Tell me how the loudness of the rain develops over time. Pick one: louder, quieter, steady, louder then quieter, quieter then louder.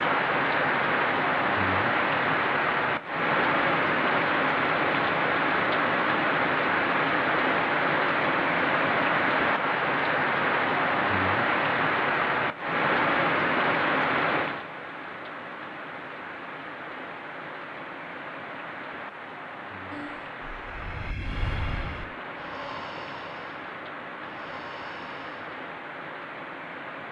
quieter.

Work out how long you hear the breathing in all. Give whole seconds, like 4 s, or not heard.
6 s.